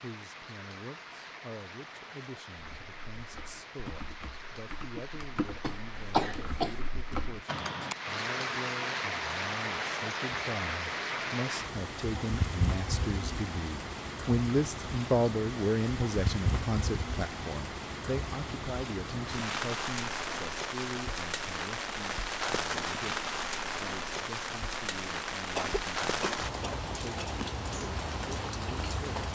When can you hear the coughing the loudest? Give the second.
6 s.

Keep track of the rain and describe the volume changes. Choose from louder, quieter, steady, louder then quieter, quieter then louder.
louder.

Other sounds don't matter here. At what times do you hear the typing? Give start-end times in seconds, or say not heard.
2.5-8.0.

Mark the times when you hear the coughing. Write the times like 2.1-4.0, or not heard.
5.6-6.8, 25.5-27.4.